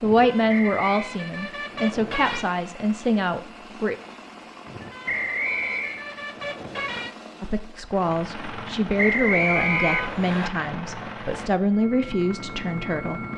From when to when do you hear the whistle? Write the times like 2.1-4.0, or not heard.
0.5-1.1, 5.0-6.0, 8.9-10.5.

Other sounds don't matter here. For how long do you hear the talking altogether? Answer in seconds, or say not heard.
10 s.